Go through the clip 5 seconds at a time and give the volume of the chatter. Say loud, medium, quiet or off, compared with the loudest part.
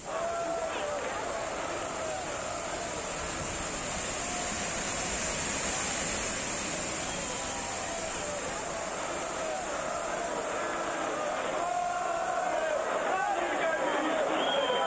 medium, medium, loud.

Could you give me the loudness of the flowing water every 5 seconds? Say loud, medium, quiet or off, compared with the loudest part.
loud, loud, medium.